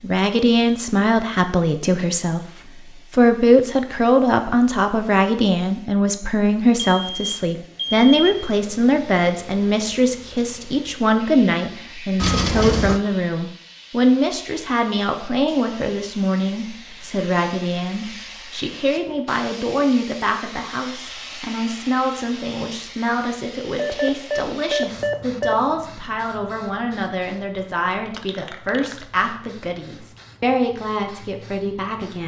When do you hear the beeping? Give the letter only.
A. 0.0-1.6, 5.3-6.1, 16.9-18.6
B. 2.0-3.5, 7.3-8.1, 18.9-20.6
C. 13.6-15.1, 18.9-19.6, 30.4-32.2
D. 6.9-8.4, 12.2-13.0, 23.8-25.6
D.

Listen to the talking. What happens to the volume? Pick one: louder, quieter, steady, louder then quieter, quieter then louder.
quieter.